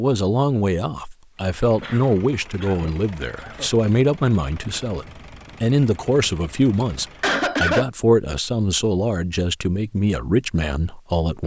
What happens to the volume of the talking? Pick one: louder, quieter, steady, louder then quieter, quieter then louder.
steady.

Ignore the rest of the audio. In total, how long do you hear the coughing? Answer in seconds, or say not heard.
3 s.